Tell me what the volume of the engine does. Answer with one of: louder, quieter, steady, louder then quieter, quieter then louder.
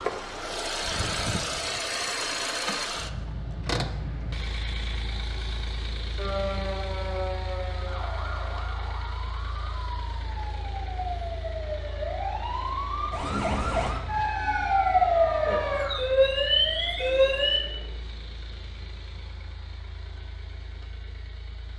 quieter.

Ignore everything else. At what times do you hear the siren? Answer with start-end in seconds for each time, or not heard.
6.2-17.6.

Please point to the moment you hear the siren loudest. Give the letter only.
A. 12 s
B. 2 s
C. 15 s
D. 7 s
C.